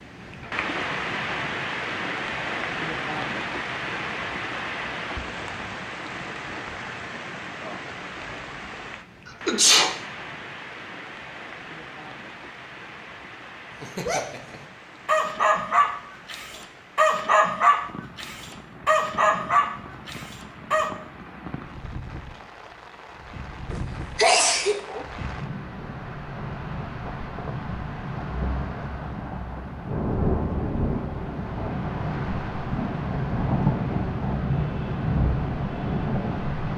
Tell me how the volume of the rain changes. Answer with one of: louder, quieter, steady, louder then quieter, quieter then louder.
quieter then louder.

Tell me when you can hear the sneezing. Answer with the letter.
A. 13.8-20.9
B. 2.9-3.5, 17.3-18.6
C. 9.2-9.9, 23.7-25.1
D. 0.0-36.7
C.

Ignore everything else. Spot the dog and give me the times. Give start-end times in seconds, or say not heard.
13.8-20.9.